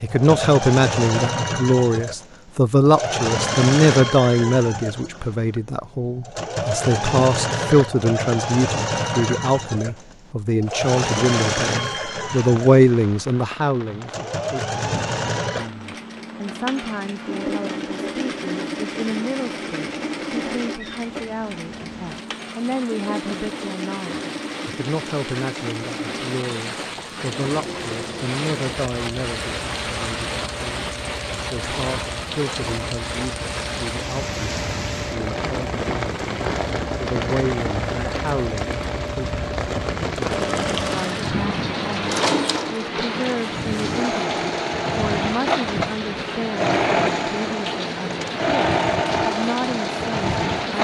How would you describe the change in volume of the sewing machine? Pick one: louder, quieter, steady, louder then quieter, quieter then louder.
quieter then louder.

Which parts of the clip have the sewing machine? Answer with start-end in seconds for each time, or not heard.
0.1-50.7.